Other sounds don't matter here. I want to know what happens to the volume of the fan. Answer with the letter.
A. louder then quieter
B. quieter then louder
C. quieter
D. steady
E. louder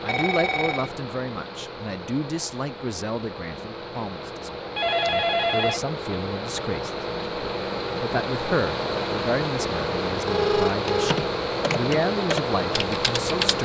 E.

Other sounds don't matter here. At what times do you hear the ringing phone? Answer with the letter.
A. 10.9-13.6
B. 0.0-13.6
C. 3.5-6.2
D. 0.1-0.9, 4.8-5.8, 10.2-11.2
D.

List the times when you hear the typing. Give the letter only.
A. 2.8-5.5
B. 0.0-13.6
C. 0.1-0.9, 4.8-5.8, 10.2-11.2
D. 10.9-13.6
D.